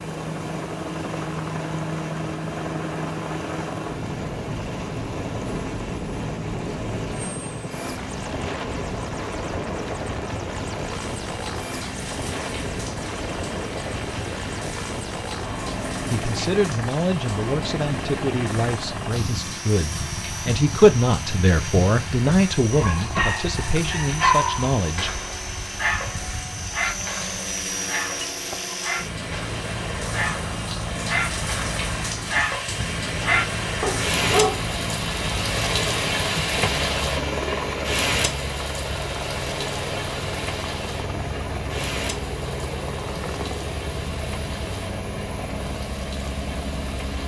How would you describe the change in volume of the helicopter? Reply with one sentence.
The volume of the helicopter stays about the same.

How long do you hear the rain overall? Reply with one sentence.
You can hear the rain for 47 seconds altogether.